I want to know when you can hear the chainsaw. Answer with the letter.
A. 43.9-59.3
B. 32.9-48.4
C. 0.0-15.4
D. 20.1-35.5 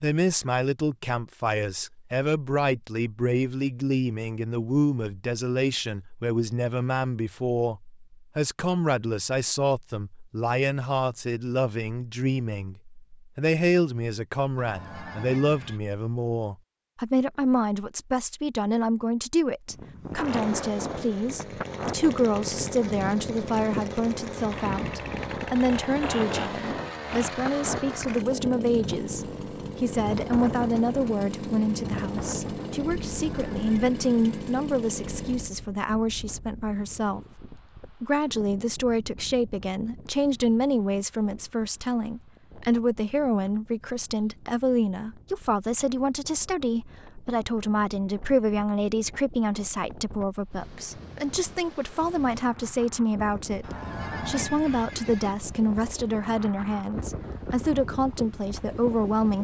D.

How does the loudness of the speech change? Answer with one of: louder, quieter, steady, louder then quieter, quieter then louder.
steady.